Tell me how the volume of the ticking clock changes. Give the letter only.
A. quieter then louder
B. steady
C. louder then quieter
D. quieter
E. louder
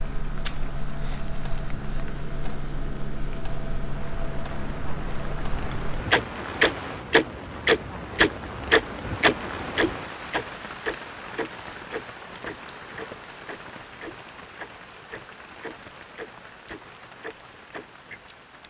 C.